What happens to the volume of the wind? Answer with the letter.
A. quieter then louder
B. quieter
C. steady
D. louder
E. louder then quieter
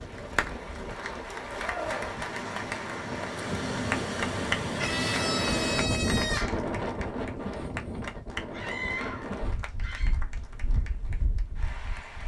E.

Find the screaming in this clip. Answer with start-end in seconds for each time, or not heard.
1.6-2.1, 4.8-6.6, 8.5-10.2.